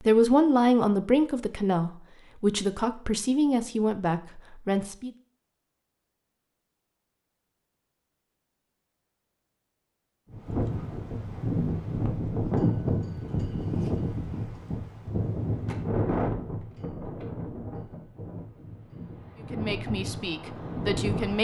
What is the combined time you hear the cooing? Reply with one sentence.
The cooing can't be heard in this clip.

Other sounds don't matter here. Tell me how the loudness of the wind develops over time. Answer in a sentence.
The loudness of the wind goes down.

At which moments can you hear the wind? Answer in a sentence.
The wind can be heard from 10.3 to 21.3 s.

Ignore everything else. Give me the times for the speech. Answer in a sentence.
The speech can be heard from 0.0 to 5.1 s and from 19.5 to 21.3 s.